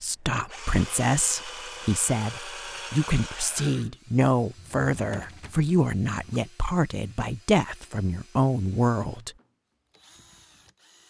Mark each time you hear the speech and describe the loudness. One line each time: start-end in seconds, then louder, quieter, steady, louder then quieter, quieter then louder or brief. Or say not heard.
0.0-9.3 steady.